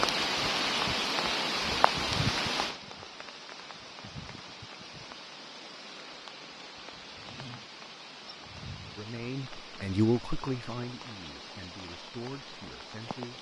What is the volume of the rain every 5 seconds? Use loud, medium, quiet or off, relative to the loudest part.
loud, quiet, quiet.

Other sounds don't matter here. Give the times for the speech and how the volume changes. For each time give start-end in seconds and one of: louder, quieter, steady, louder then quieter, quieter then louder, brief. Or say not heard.
8.9-13.3 quieter.